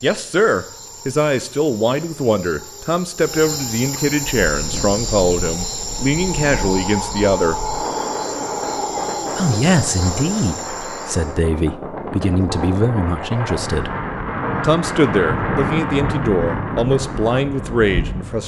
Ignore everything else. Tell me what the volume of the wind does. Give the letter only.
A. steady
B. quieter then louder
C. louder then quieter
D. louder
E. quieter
D.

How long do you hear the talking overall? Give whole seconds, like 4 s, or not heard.
16 s.